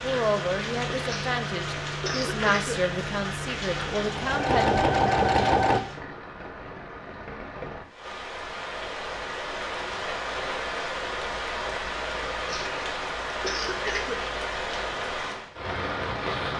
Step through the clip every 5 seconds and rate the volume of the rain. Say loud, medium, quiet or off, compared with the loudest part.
loud, medium, loud, loud.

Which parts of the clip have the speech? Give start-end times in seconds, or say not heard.
0.0-4.8.